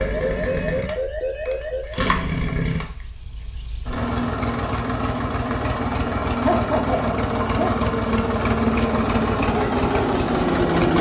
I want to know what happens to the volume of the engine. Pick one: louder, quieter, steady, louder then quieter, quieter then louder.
louder.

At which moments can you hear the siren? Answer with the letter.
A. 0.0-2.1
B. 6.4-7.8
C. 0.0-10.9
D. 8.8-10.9
A.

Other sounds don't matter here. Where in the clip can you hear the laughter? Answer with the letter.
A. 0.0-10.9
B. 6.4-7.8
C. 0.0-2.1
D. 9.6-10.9
B.